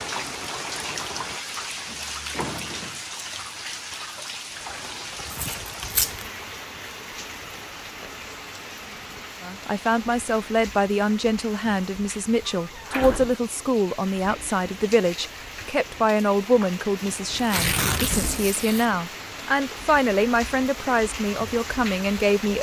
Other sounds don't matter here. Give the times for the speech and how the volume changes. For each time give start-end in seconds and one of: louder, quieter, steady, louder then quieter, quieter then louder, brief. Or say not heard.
9.4-22.5 steady.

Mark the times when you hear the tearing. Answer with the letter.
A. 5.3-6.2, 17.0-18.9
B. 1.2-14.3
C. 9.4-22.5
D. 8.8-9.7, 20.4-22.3
A.